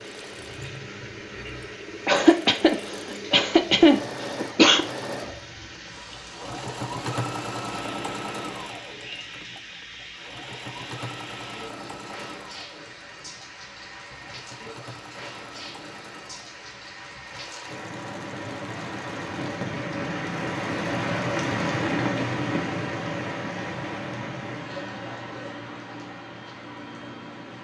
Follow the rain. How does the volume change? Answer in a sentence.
The loudness of the rain goes up.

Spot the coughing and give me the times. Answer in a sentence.
You can hear the coughing from 2.0 to 4.8 s.